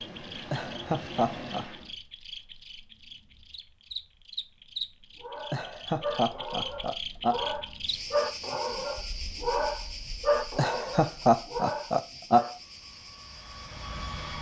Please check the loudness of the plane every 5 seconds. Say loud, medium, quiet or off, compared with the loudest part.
loud, off, loud.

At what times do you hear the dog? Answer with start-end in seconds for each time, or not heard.
5.2-12.6.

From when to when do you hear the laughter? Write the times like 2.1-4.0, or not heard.
0.5-1.6, 5.5-7.4, 10.6-12.6.